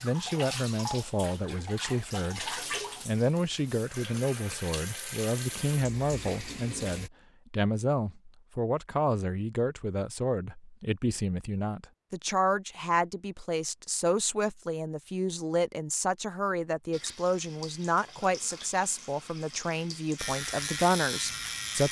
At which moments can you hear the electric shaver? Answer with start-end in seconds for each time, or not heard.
20.1-21.8.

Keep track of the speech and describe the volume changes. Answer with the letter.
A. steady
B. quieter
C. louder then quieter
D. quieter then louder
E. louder
A.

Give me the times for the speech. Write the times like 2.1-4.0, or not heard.
0.0-21.8.